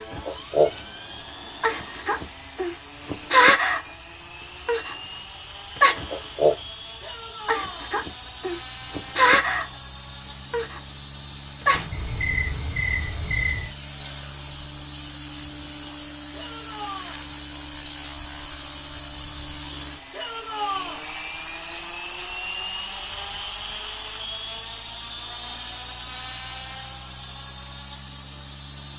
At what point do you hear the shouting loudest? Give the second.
21 s.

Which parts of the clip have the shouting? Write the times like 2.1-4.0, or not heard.
7.0-7.9, 16.3-17.2, 20.1-21.0.